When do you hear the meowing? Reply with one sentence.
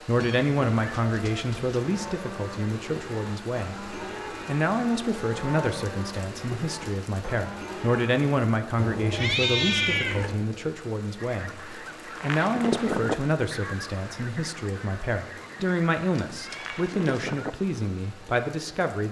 You can hear the meowing from 0.1 to 2.1 s, from 8.8 to 10.4 s and from 16.1 to 17.2 s.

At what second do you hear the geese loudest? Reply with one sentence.
The loudest moment of the geese is at 13 seconds.